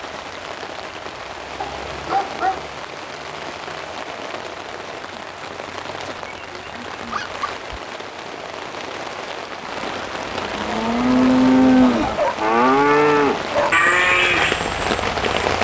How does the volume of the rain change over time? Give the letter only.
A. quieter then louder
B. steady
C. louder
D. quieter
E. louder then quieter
C.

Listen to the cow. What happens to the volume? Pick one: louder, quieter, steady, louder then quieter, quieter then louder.
steady.